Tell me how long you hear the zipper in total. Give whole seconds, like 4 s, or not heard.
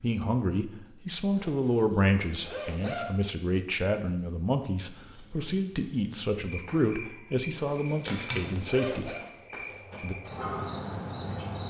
3 s.